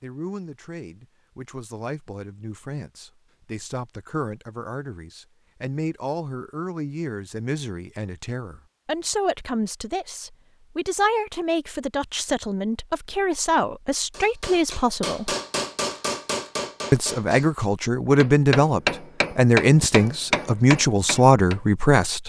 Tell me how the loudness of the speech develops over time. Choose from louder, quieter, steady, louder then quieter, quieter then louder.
louder.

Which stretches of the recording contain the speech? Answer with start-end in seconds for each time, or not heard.
0.0-15.3, 16.9-22.2.